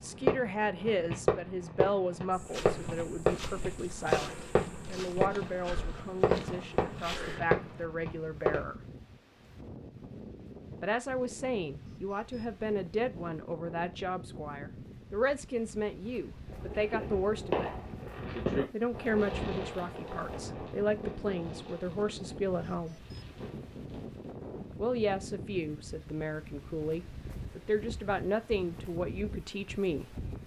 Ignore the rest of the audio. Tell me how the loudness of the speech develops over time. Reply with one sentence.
The volume of the speech stays about the same.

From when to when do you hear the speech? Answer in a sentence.
The speech can be heard from 0.0 to 8.8 s, from 10.8 to 17.7 s, from 18.7 to 23.0 s and from 24.8 to 30.1 s.